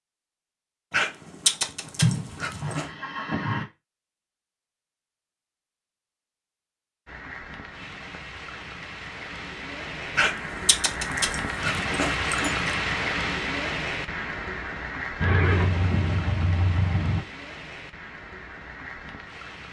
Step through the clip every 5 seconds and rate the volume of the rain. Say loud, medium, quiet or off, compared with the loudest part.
off, medium, loud, medium.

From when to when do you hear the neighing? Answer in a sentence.
The neighing can be heard from 2.0 to 3.6 s and from 15.2 to 17.2 s.